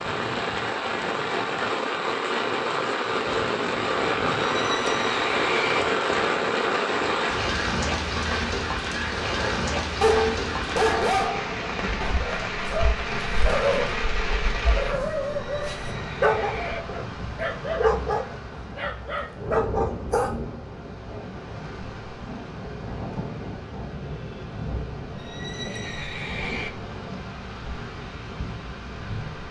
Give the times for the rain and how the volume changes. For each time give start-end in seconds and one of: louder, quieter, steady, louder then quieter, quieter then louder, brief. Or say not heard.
0.0-29.4 quieter.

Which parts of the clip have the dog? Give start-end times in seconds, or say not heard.
9.3-20.3.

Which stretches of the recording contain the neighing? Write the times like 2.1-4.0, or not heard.
4.4-5.8, 15.5-16.8, 25.1-26.7.